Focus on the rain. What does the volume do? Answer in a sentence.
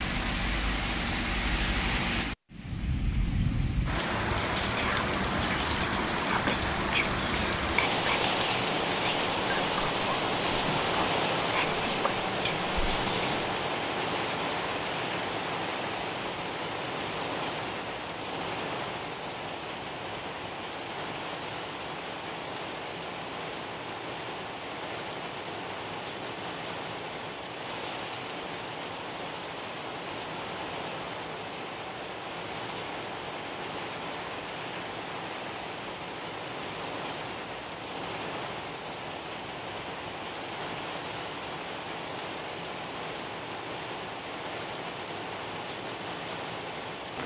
The loudness of the rain goes down.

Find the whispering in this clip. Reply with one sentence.
You can hear the whispering from 4.7 to 13.6 s.